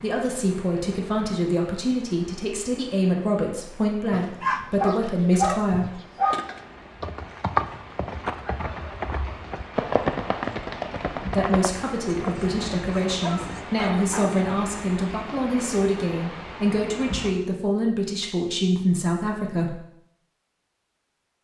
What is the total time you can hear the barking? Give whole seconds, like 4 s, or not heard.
4 s.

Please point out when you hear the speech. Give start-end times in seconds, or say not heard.
0.0-6.0, 11.2-19.8.